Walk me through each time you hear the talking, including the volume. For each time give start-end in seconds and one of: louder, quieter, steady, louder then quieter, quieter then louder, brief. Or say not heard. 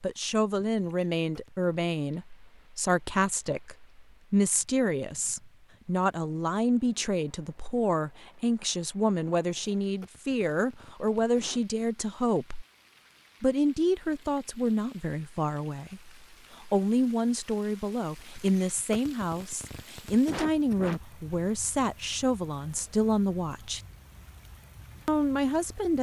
0.0-12.7 steady
13.4-23.8 steady
25.1-25.9 brief.